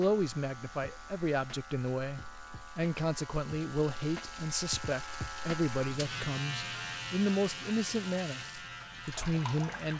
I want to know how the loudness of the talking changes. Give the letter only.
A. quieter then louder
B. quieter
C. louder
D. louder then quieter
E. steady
E.